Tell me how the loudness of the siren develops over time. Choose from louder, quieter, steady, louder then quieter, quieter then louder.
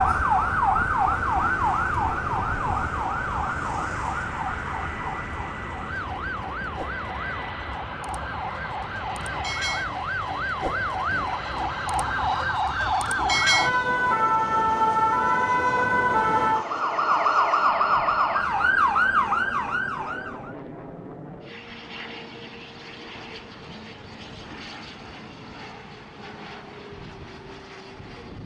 quieter then louder.